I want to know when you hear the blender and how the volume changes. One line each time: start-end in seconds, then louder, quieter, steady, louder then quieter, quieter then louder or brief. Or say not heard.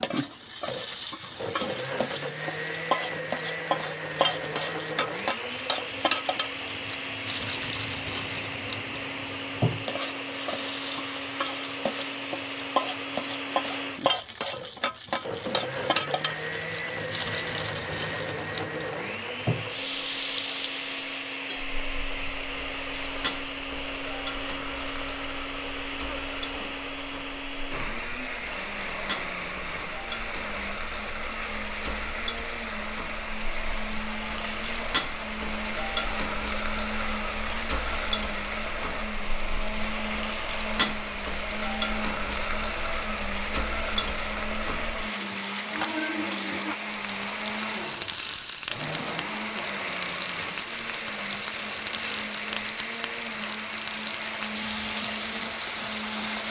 0.0-56.4 steady.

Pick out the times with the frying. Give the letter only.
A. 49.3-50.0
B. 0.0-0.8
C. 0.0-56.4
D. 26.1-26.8
C.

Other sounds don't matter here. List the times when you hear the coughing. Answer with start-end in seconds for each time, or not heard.
26.1-26.8.